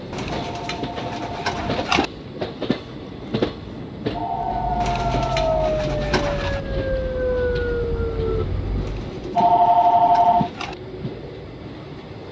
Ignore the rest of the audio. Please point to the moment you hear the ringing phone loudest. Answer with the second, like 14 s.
10 s.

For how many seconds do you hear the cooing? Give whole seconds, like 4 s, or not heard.
6 s.